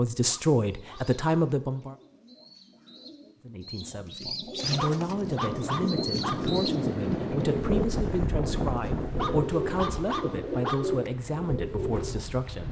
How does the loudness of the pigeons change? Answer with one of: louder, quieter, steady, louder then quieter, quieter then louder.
louder.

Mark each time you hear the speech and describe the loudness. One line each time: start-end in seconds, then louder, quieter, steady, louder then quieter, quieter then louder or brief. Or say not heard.
0.0-1.9 brief
3.5-12.6 steady.